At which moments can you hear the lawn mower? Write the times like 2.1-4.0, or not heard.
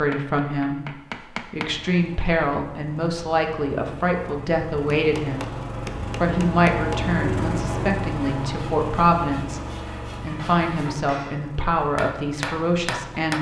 1.6-13.3.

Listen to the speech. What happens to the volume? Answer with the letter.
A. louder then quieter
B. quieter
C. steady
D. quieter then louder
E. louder
C.